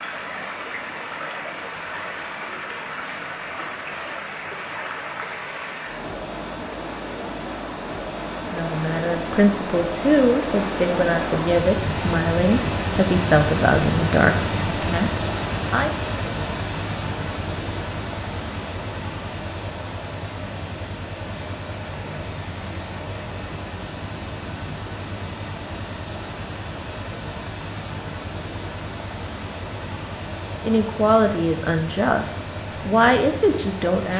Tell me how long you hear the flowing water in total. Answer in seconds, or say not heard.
34 s.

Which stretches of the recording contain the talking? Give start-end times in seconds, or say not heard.
8.5-15.9, 30.6-34.1.